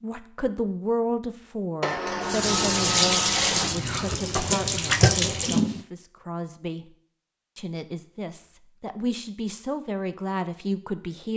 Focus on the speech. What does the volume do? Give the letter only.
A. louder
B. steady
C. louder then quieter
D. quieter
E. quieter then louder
E.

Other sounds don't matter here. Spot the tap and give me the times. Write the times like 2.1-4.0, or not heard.
2.2-5.8.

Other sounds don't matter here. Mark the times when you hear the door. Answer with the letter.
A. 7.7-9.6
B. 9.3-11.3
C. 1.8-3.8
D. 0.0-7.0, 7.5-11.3
C.